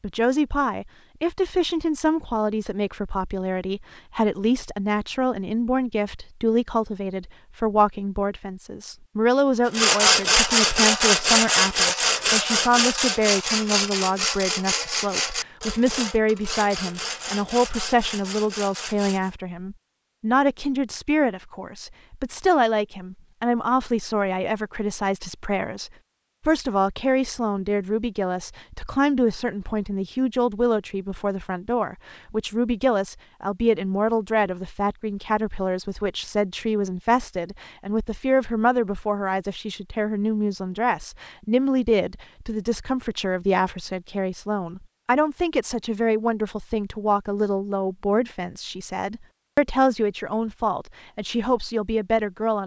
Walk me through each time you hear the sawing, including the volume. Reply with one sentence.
The sawing can be heard from 9.8 to 19.3 s, getting quieter.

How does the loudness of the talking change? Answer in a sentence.
The loudness of the talking stays about the same.